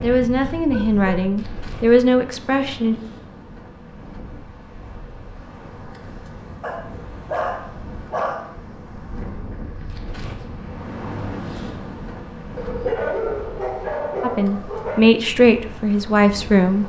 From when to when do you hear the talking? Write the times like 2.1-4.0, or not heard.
0.0-3.0, 14.2-16.8.